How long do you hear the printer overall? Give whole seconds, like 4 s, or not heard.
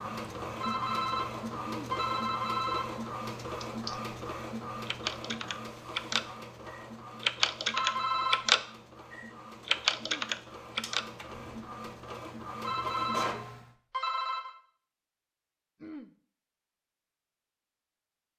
14 s.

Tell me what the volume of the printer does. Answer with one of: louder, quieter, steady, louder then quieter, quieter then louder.
quieter then louder.